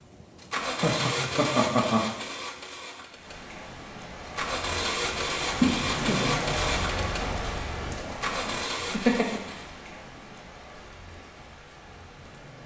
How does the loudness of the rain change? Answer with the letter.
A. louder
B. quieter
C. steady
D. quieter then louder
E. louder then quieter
E.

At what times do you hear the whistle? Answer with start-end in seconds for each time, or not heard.
not heard.